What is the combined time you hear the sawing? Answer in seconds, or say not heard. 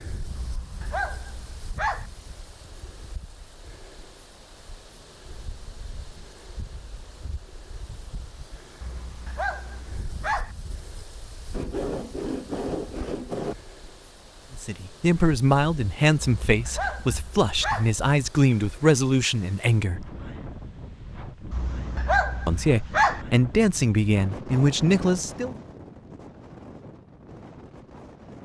2 s.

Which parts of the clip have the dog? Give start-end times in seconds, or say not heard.
0.3-2.0, 8.8-10.5, 16.4-17.9, 21.5-23.2.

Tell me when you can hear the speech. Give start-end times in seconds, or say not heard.
14.6-20.1, 22.4-25.6.